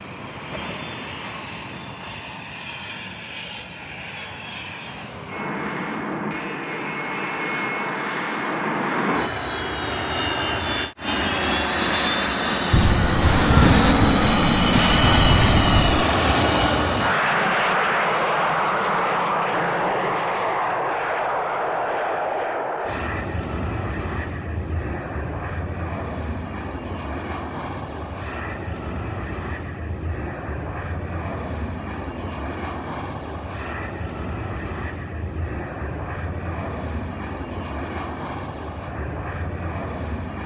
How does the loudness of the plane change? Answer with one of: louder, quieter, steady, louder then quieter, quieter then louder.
louder then quieter.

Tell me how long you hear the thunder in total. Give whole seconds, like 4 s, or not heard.
3 s.